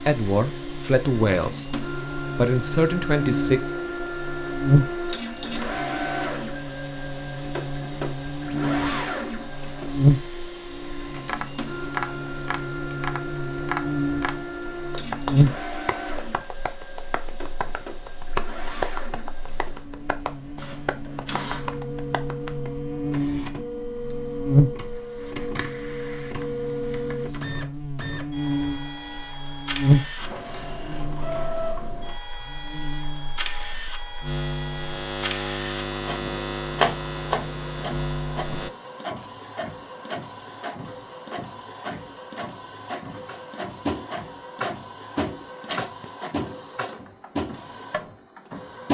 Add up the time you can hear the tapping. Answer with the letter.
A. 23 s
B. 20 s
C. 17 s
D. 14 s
C.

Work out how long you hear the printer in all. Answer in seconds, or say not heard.
49 s.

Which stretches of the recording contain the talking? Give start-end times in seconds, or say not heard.
0.0-3.6.